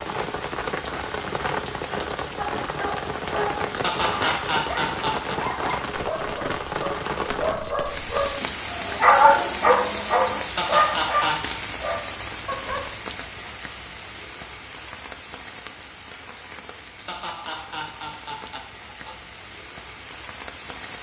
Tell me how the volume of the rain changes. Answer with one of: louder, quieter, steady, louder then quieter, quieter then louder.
quieter.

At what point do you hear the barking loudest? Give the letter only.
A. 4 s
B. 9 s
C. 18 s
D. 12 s
B.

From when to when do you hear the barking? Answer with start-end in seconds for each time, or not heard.
2.4-12.9.